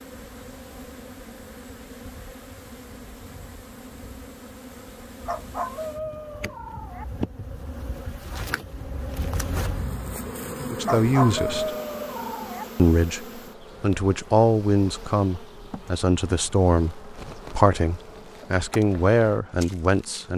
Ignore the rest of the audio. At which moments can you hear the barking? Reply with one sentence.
You can hear the barking from 5.2 to 7.0 s and from 10.8 to 12.7 s.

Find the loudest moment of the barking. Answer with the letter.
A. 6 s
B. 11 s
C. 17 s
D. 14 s
B.